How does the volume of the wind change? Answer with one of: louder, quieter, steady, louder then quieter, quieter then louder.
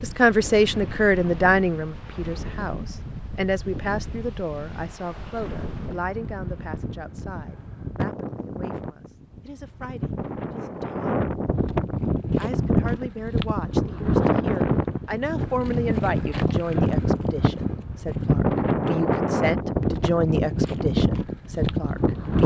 louder.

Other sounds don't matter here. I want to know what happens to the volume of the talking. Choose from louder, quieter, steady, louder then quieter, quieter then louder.
quieter then louder.